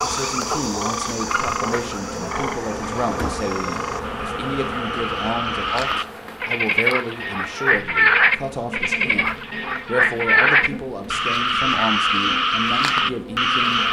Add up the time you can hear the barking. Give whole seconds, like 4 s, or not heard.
not heard.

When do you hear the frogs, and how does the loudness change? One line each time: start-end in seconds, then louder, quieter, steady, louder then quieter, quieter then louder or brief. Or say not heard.
0.0-13.8 louder.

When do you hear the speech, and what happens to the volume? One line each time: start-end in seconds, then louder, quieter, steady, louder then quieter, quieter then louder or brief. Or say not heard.
0.0-13.8 steady.